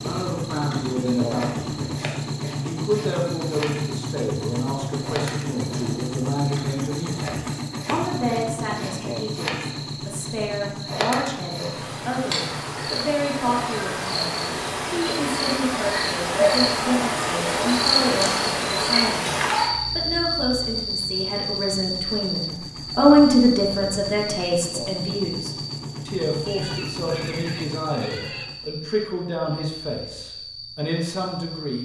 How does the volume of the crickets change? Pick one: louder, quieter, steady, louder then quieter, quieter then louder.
louder then quieter.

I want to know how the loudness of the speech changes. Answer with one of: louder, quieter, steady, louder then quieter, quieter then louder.
louder then quieter.